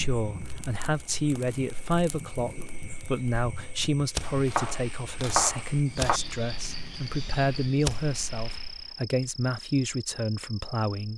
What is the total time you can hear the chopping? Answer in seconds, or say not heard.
2 s.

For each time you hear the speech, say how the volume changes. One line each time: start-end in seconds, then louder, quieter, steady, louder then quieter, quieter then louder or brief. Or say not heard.
0.0-11.1 steady.